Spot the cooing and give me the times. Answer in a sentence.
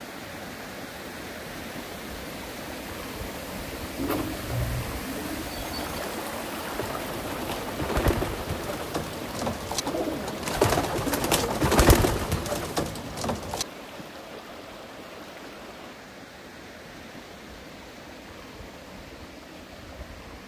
The cooing can be heard from 4.0 to 13.7 s.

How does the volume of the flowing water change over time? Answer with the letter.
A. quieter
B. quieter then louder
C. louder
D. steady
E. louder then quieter
A.